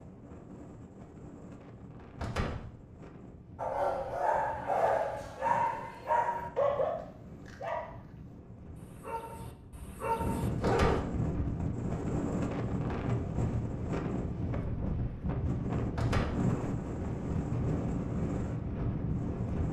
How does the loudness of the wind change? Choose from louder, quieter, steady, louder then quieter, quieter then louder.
louder.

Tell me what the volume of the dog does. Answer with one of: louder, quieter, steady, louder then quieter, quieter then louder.
quieter then louder.